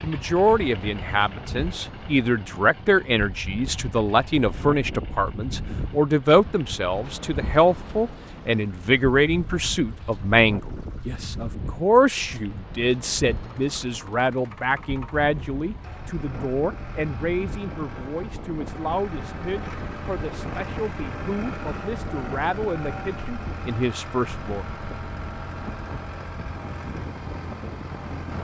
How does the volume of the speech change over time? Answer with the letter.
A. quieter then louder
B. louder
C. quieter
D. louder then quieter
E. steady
C.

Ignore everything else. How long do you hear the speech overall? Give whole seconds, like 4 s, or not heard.
25 s.